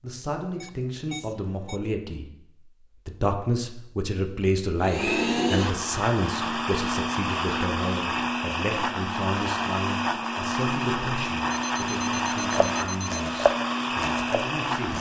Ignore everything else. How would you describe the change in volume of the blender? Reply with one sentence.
The loudness of the blender stays about the same.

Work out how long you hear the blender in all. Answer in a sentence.
The blender can be heard for 10 seconds in total.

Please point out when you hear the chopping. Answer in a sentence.
The chopping can be heard from 12.4 to 14.9 s.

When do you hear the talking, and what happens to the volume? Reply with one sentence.
You can hear the talking briefly from 0.0 to 2.3 s; and from 3.0 to 14.9 s, getting quieter.